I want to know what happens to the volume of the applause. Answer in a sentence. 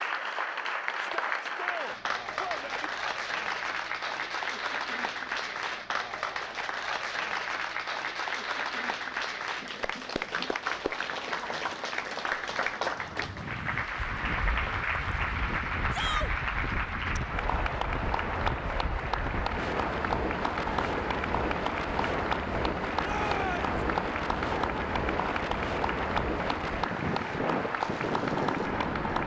The loudness of the applause stays about the same.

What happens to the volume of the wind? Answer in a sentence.
The loudness of the wind goes up.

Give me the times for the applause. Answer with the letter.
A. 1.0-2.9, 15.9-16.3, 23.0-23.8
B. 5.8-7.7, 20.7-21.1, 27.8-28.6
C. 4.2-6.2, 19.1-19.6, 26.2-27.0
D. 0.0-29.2
D.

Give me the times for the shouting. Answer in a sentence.
The shouting can be heard from 1.0 to 2.9 s, from 15.9 to 16.3 s and from 23.0 to 23.8 s.